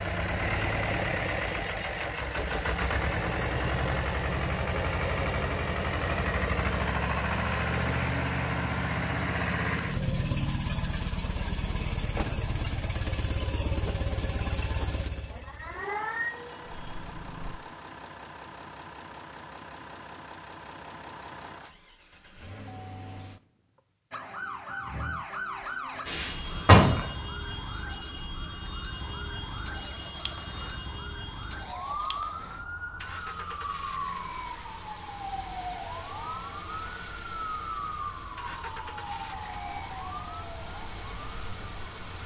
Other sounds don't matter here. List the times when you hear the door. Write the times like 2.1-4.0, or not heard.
26.1-27.1.